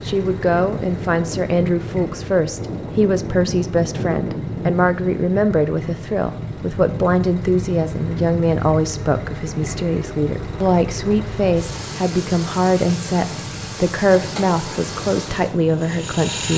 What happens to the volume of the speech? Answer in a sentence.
The volume of the speech stays about the same.